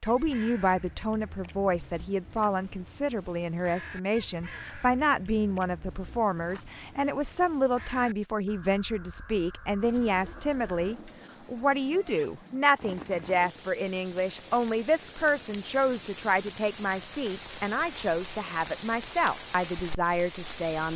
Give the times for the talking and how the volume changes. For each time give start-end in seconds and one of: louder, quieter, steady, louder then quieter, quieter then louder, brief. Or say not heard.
0.0-20.9 steady.